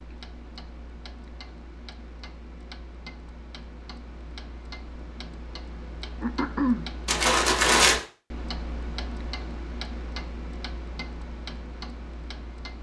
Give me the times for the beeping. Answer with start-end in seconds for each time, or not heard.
not heard.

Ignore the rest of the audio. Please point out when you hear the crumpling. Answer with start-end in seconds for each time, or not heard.
7.0-8.0.